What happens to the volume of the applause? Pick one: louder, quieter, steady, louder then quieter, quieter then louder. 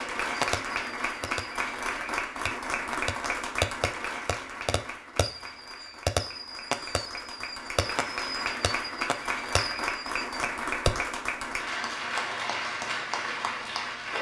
quieter then louder.